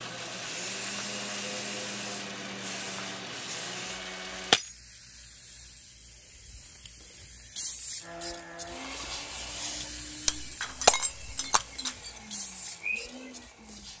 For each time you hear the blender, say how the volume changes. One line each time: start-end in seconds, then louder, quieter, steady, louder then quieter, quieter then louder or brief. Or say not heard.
0.0-4.6 steady
8.0-13.9 quieter then louder.